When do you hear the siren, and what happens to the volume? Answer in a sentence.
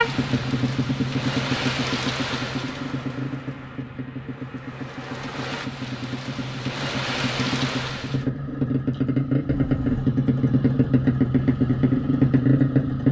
You can't hear the siren here.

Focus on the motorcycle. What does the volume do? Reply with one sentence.
The volume of the motorcycle goes down, then up.